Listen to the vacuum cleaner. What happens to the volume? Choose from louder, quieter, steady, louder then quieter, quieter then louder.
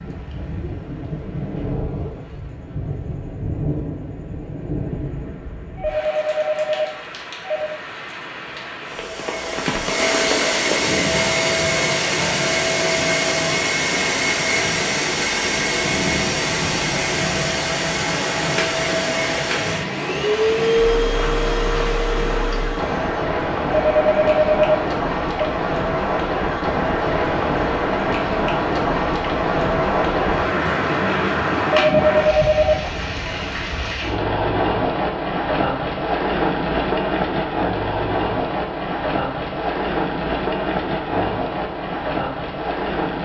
steady.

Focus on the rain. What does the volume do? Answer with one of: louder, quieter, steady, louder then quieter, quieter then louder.
louder.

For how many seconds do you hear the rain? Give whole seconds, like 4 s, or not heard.
43 s.